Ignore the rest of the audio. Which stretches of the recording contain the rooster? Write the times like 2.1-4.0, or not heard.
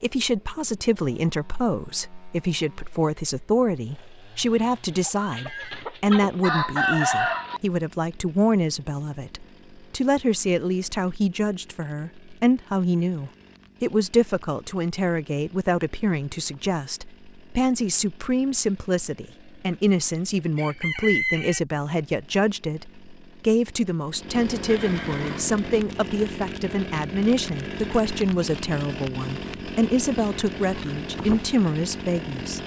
5.0-7.6, 20.6-21.6.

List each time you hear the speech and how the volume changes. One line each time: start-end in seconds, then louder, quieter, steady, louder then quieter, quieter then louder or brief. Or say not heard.
0.0-32.6 steady.